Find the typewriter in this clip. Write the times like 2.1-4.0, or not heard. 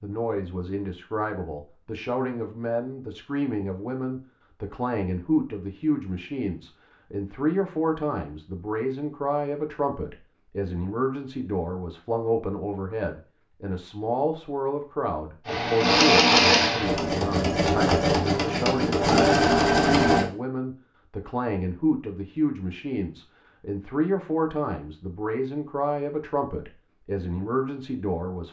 not heard.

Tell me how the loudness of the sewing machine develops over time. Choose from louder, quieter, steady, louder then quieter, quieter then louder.
quieter then louder.